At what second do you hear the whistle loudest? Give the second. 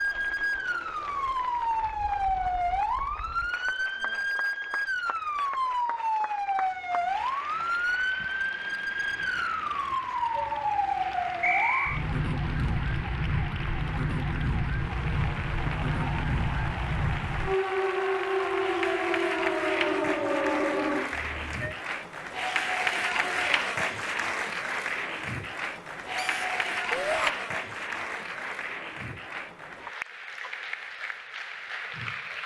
12 s.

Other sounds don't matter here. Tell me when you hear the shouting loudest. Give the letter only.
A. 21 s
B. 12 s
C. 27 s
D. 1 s
C.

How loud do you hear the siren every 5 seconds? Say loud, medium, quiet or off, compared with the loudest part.
loud, loud, loud, loud, loud, off, off.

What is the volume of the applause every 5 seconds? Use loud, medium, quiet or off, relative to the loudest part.
quiet, quiet, medium, loud, loud, loud, medium.